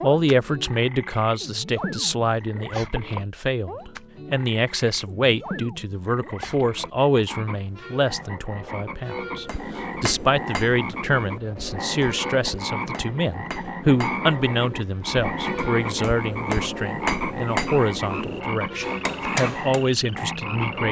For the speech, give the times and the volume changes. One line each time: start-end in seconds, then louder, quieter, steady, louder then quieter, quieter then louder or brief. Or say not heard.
0.0-20.8 steady.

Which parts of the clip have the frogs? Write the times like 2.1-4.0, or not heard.
0.0-20.8.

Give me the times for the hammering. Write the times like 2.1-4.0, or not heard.
9.4-19.9.